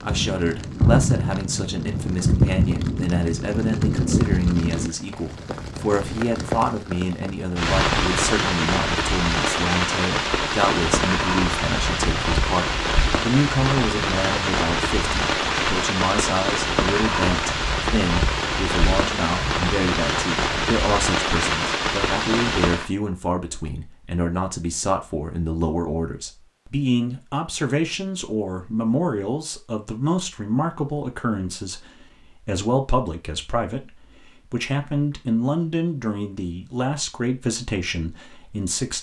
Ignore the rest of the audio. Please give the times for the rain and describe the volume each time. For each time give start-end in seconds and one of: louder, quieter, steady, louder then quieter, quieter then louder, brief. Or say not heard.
0.0-22.9 steady.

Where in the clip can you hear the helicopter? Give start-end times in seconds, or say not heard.
not heard.